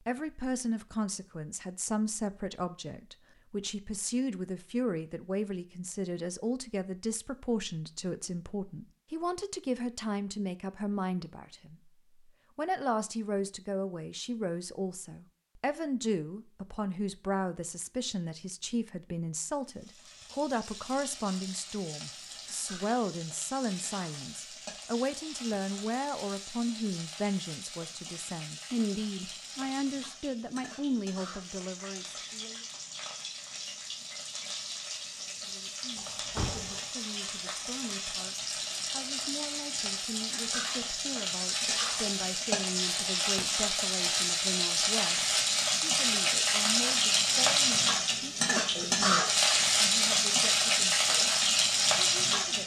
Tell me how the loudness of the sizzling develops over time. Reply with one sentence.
The loudness of the sizzling goes up.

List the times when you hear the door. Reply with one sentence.
You can hear the door from 36.0 to 36.8 s.